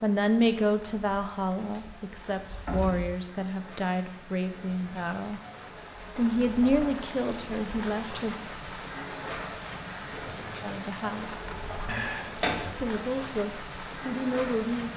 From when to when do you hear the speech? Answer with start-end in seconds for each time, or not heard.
0.0-5.4, 6.2-8.3, 10.6-11.5, 12.8-14.9.